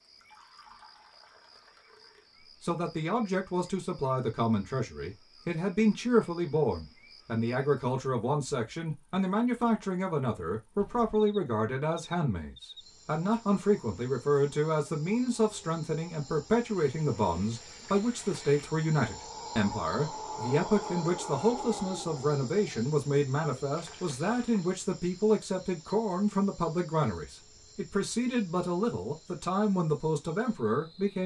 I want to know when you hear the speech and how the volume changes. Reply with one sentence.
You can hear the speech from 2.6 to 31.2 s, at a steady volume.